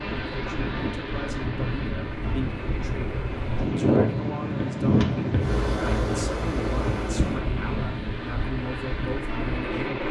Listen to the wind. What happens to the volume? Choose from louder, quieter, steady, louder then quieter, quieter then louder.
louder then quieter.